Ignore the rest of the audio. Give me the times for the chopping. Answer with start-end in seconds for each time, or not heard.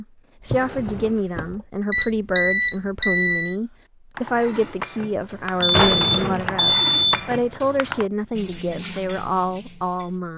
not heard.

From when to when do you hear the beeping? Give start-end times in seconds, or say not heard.
1.9-3.5, 5.6-7.2.